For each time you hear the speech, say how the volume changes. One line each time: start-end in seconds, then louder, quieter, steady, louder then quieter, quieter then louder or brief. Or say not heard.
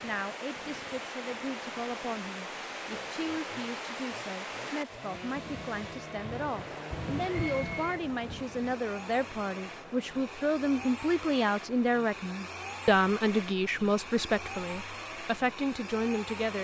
0.0-16.5 louder.